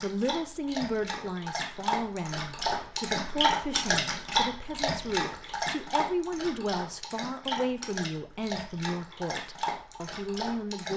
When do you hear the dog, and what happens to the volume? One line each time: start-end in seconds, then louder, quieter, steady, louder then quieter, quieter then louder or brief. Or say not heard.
0.0-10.9 louder then quieter.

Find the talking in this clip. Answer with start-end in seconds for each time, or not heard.
0.0-10.9.